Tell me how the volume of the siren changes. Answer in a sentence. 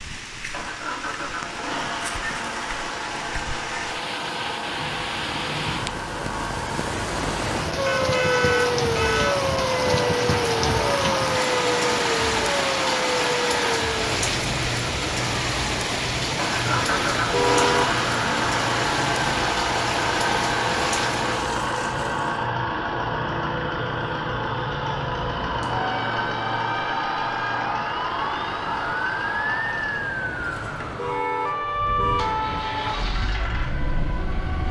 The volume of the siren goes down, then up.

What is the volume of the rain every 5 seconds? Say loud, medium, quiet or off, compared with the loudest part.
medium, loud, loud, loud, medium, off, off.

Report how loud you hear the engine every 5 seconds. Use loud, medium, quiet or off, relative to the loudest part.
medium, medium, loud, loud, loud, loud, medium.